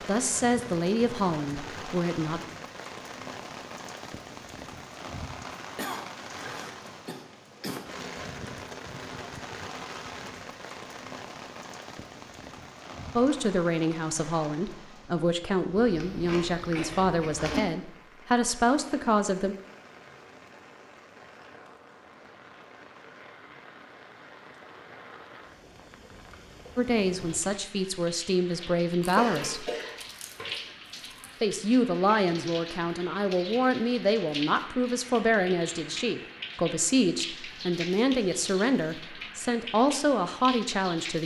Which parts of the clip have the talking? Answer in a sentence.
You can hear the talking from 0.1 to 2.4 s, from 13.2 to 19.6 s, from 26.8 to 29.7 s and from 31.4 to 41.2 s.